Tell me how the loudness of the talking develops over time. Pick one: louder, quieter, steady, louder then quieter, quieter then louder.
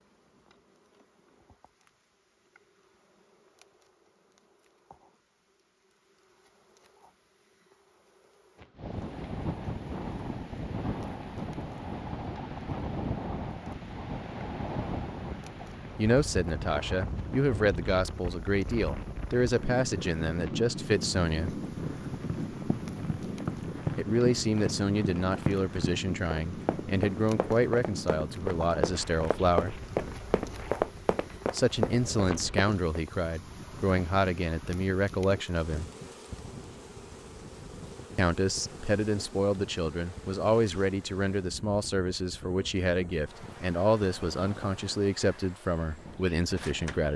steady.